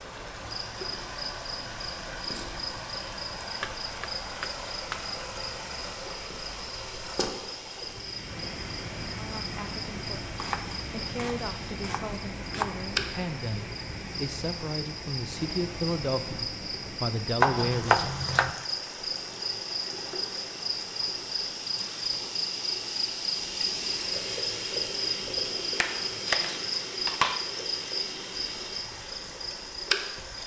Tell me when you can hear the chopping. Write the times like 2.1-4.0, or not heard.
3.4-5.1, 10.3-12.8, 17.4-18.5, 25.8-27.4.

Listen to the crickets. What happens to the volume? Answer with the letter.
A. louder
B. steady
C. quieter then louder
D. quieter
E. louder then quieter
A.